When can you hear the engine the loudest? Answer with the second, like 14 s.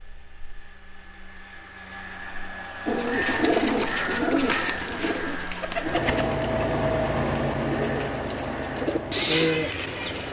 7 s.